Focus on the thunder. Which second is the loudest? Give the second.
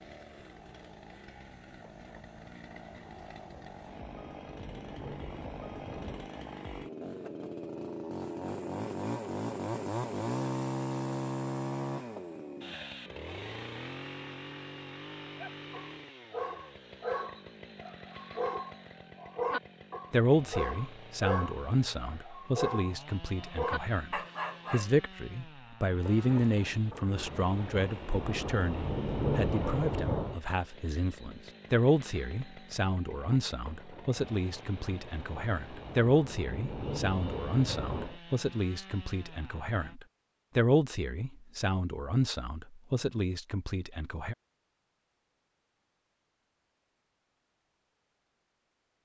29 s.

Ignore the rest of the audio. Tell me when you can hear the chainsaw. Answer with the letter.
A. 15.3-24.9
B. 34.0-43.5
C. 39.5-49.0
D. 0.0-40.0
D.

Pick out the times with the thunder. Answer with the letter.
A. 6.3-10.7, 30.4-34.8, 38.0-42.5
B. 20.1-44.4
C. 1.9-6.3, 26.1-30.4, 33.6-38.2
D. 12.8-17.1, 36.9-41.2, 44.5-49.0
C.